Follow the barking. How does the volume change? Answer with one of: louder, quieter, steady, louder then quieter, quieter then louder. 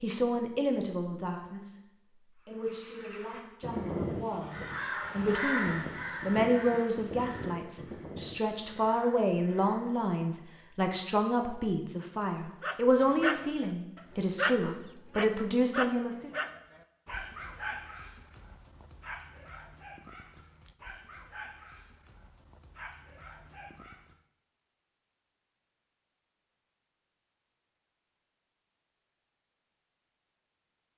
quieter.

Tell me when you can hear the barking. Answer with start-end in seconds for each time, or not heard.
12.6-24.2.